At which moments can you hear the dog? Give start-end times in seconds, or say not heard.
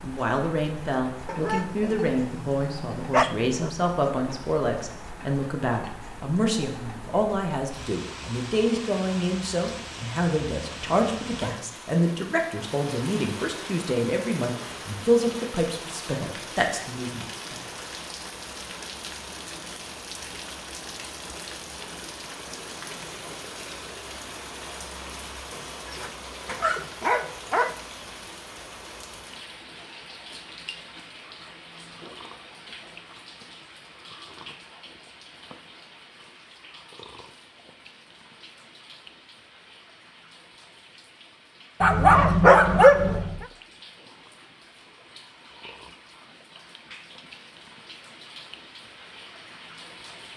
1.2-3.7, 25.5-27.8, 41.8-43.5.